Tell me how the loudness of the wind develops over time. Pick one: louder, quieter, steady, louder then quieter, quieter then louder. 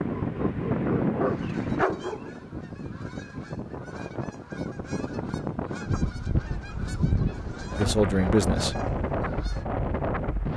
quieter then louder.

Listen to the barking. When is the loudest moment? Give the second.
2 s.